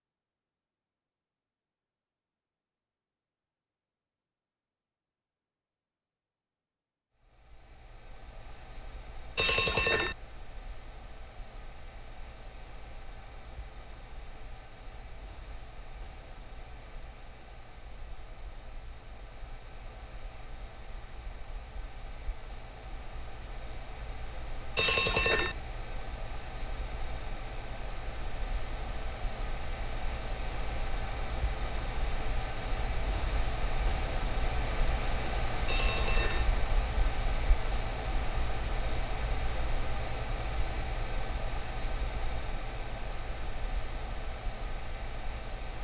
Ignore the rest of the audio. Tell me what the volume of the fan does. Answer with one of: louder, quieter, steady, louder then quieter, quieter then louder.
louder.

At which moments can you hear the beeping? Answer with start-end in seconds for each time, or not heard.
9.3-10.2, 24.8-25.6, 35.6-36.5.